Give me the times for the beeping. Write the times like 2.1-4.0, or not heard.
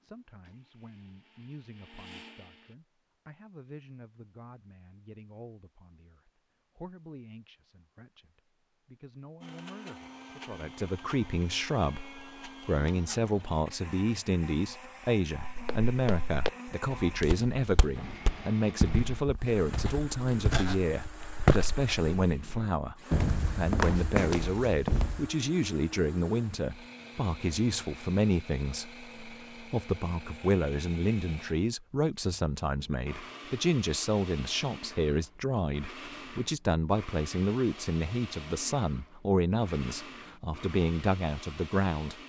not heard.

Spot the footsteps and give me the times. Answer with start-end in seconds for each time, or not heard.
15.3-25.3.